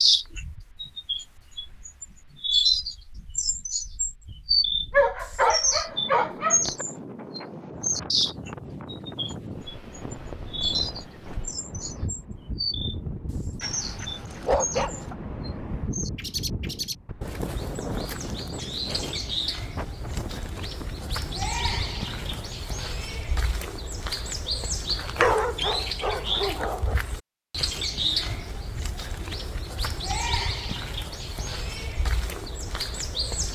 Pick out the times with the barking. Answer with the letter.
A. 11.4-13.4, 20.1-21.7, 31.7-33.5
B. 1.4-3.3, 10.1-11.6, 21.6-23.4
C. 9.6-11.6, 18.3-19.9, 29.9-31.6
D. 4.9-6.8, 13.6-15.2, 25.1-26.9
D.